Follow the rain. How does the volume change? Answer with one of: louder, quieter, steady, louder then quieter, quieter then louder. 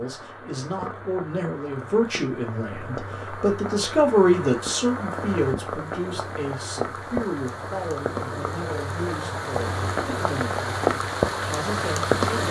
louder.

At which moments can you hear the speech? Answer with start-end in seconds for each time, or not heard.
0.0-12.4.